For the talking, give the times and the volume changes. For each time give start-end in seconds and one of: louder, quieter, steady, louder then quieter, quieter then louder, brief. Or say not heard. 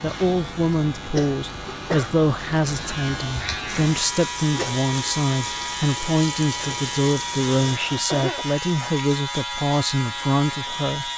0.0-11.1 steady.